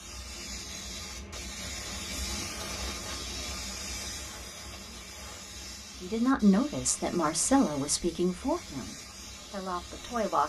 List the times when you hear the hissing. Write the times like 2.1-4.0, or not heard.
0.0-10.4.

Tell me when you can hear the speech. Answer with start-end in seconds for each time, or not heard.
6.0-10.4.